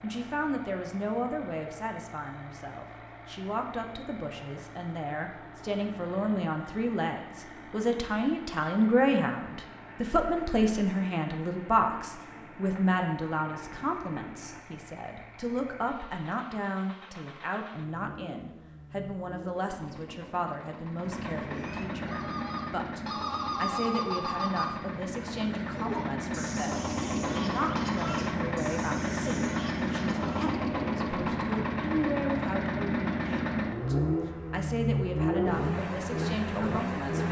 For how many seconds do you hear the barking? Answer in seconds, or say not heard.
not heard.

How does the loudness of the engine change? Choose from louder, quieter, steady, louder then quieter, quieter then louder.
louder.